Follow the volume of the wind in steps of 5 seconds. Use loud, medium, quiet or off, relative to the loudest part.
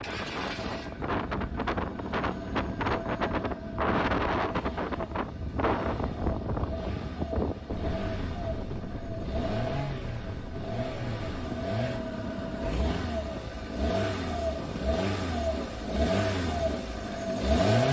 loud, loud, medium, quiet.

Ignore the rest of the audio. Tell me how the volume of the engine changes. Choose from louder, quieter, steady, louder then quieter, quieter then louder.
louder.